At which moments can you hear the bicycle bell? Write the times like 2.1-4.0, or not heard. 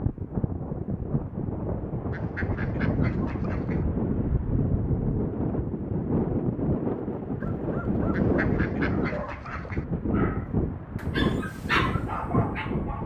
not heard.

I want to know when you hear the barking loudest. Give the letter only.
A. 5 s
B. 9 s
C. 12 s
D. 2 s
C.